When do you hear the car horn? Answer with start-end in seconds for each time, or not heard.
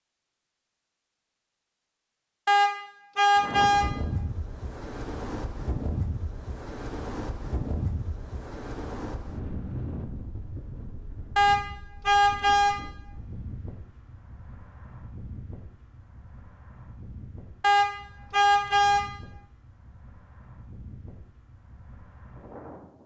2.5-3.9, 11.3-12.8, 17.6-19.1.